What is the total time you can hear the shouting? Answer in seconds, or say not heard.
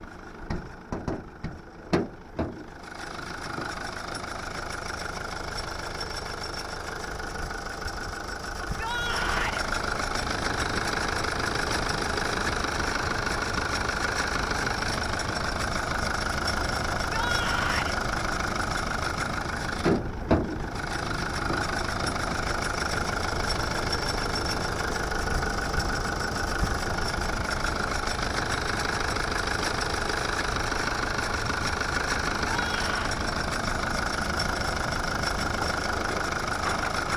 3 s.